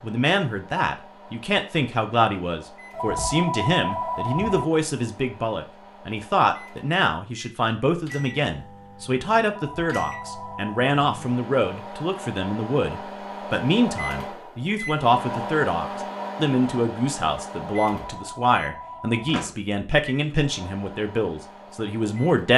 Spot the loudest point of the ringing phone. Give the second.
4 s.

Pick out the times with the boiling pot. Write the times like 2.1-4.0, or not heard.
not heard.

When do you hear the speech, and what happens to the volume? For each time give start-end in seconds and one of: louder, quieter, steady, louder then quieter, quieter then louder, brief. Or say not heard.
0.0-22.5 steady.